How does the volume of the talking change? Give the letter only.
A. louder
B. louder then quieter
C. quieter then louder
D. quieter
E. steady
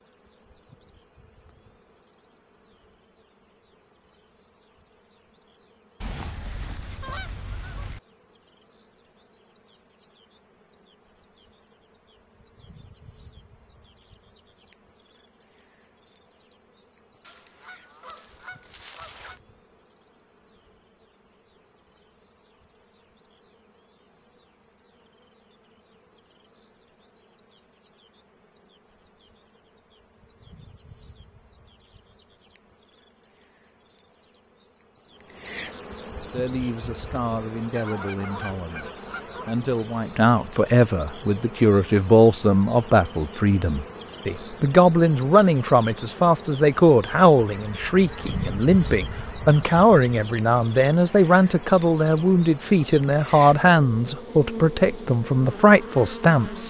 A.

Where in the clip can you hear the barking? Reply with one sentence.
The barking can't be heard in this clip.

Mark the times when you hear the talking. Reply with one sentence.
The talking can be heard from 36.3 to 56.6 s.